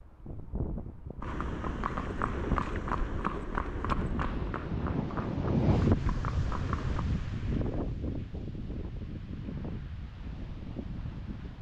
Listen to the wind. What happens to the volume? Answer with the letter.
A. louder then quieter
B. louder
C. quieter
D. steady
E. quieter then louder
A.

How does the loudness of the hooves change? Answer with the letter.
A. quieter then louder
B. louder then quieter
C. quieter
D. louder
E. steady
C.